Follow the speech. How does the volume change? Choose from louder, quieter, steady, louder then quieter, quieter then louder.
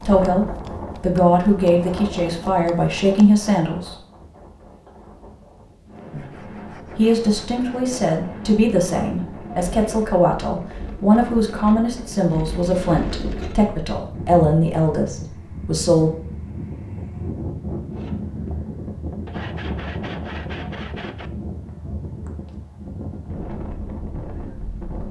steady.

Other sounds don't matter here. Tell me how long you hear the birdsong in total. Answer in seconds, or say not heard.
not heard.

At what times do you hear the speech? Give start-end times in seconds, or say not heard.
0.0-4.0, 6.1-16.1.